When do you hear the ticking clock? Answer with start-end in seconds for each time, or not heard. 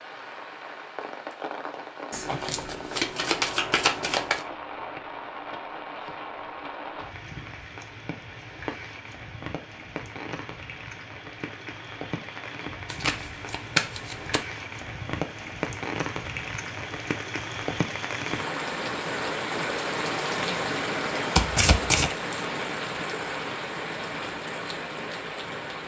not heard.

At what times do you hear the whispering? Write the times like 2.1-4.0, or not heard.
not heard.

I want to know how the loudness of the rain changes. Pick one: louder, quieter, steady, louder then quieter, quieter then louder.
louder.